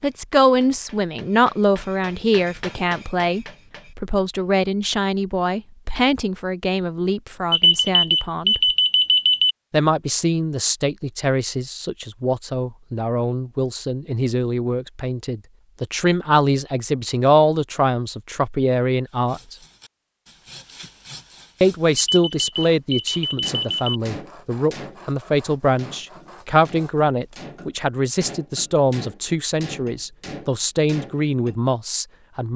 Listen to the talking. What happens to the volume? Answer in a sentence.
The loudness of the talking stays about the same.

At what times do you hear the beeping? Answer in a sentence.
You can hear the beeping from 7.5 to 9.6 s and from 21.9 to 24.0 s.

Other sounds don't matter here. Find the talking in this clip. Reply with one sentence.
The talking can be heard from 0.0 to 8.8 s, from 9.7 to 19.6 s and from 21.6 to 32.5 s.